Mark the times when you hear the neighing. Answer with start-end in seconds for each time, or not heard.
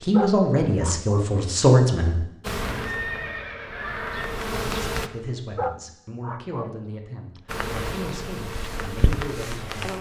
2.5-4.3.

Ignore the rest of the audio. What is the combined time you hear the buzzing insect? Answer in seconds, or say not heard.
5 s.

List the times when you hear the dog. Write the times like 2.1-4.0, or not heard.
0.1-1.3, 5.5-6.8.